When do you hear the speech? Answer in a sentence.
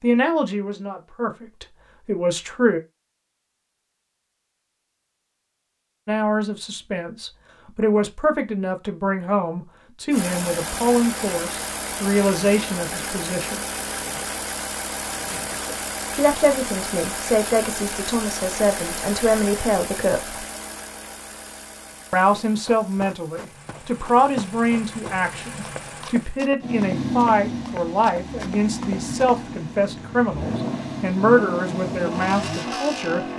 The speech can be heard from 0.0 to 2.8 s, from 6.0 to 13.6 s, from 16.1 to 20.4 s and from 22.1 to 33.2 s.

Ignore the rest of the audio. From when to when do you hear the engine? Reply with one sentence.
You can hear the engine from 10.1 to 33.3 s.